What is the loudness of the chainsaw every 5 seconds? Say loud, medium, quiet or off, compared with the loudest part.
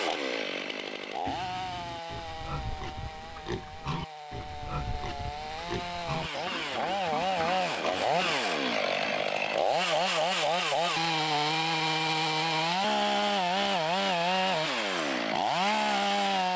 medium, loud, loud, loud.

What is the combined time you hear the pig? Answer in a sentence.
You can hear the pig for 8 seconds altogether.